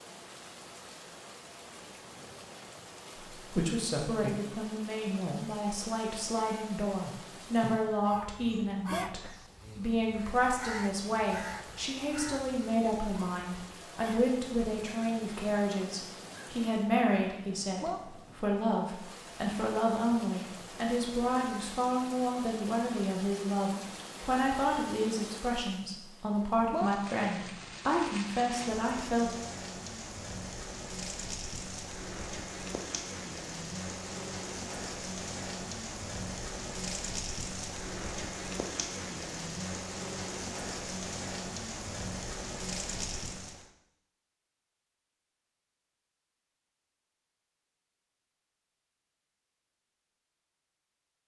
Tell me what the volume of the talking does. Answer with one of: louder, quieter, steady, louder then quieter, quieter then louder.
steady.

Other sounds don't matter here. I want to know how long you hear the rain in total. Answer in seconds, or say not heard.
44 s.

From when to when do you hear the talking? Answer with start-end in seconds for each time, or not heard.
3.4-29.4.